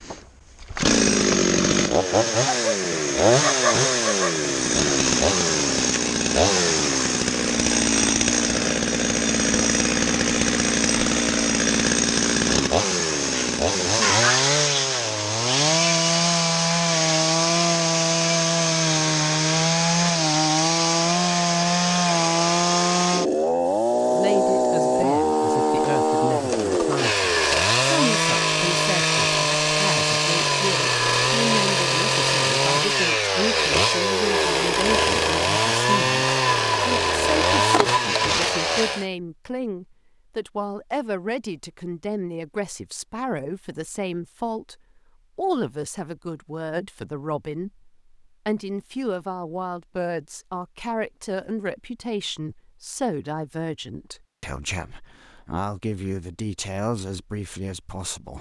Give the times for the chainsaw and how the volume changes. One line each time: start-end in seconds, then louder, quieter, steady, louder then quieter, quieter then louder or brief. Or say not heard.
0.0-39.0 steady.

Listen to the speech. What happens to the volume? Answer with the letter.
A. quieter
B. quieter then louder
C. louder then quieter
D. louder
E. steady
E.